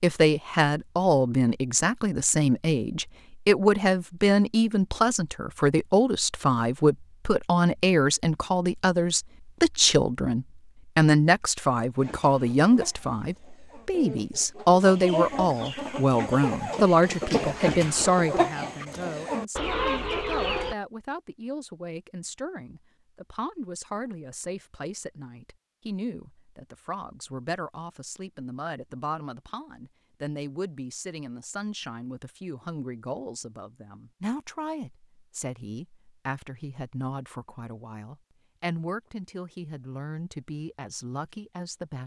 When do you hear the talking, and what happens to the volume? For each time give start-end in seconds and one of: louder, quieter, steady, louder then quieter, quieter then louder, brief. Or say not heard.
0.0-42.0 quieter.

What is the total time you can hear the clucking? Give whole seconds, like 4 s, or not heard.
9 s.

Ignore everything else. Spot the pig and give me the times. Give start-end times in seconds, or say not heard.
not heard.